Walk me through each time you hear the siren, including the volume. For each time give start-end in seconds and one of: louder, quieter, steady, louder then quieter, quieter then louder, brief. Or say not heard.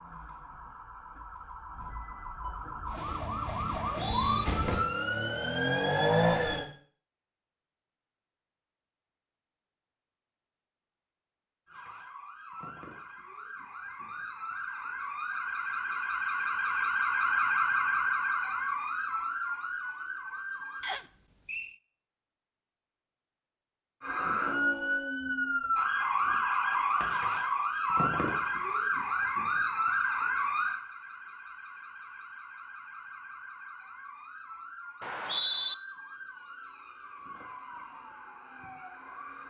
0.0-6.7 louder
11.7-20.9 louder then quieter
24.0-39.4 quieter.